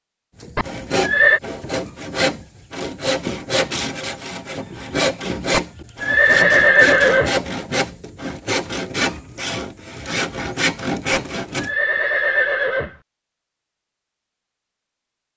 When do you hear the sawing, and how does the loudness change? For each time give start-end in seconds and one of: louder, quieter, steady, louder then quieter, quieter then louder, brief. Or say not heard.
0.4-11.8 steady.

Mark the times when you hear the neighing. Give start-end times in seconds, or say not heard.
0.6-1.4, 5.5-7.3, 11.1-12.9.